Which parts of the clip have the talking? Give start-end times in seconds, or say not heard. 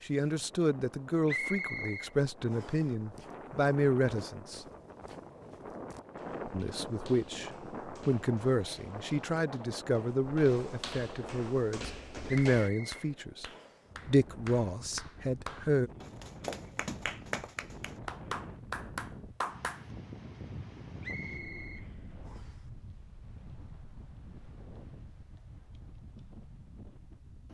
0.0-4.7, 6.5-13.4, 14.1-15.9.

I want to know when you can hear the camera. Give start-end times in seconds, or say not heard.
not heard.